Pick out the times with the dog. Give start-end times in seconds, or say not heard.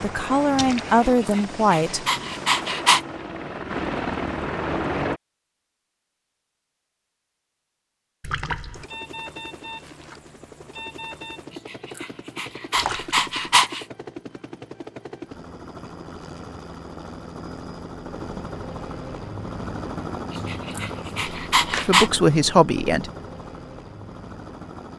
1.0-3.0, 11.7-13.8, 20.3-22.1.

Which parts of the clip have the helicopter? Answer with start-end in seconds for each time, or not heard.
0.0-5.2, 8.7-24.9.